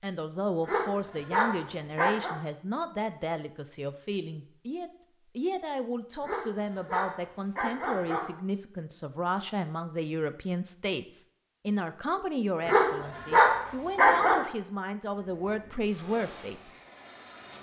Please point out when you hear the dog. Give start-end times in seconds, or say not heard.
0.7-2.4, 6.2-8.3, 12.7-14.4.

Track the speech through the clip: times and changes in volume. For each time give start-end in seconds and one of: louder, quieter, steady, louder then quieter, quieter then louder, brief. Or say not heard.
0.0-16.7 steady.